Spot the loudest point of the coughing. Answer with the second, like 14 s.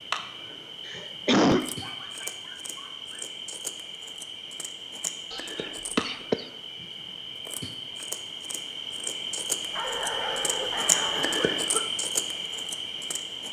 1 s.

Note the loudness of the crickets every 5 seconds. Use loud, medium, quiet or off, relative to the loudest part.
medium, medium, loud.